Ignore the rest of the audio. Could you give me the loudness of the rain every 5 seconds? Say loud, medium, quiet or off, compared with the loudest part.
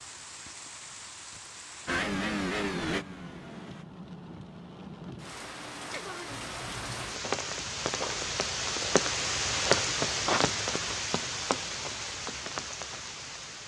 quiet, loud, loud.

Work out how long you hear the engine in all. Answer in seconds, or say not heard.
2 s.